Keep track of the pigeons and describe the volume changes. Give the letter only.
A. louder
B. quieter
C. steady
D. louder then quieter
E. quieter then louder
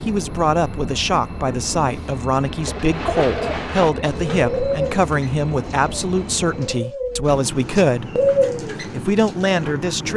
E.